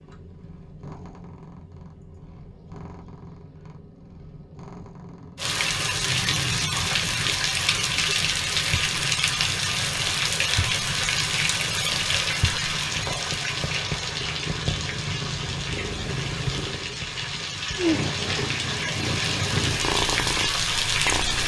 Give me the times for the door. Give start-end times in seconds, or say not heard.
not heard.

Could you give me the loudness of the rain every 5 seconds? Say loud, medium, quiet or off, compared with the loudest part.
off, loud, loud, medium, loud.